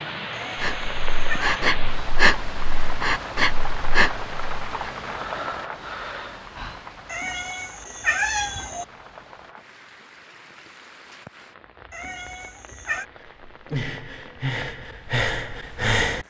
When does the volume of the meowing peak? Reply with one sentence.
The volume of the meowing peaks at 8 seconds.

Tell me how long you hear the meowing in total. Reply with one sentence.
You can hear the meowing for 4 seconds altogether.